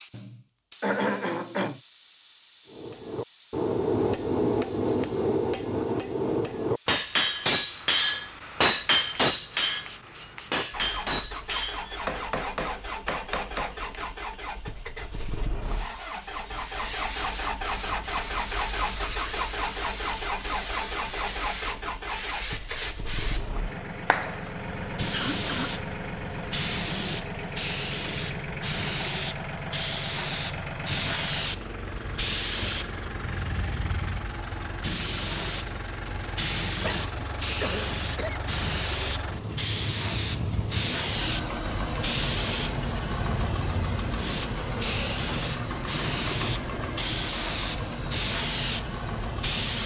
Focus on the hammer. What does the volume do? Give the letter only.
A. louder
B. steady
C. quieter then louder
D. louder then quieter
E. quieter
E.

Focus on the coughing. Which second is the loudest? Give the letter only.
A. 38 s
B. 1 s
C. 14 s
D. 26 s
B.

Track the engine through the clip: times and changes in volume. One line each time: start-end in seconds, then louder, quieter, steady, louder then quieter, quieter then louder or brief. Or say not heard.
10.7-49.8 steady.